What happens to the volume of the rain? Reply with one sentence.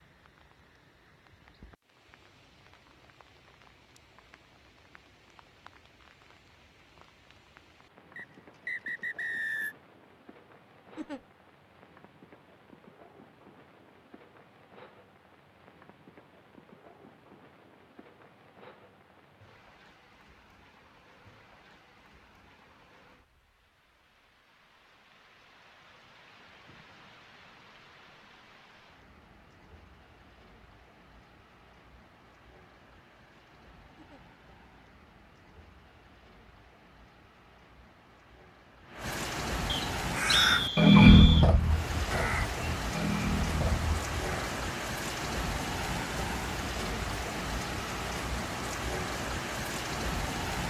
The loudness of the rain goes up.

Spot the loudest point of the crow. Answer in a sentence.
The volume of the crow peaks at 41 seconds.